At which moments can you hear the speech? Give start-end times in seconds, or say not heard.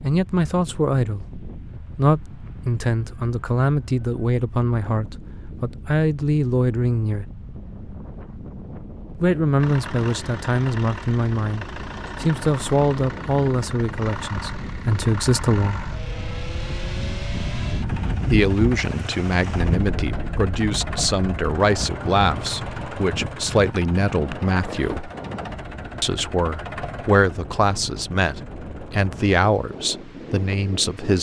0.0-7.2, 9.2-15.8, 18.3-25.1, 26.0-31.1.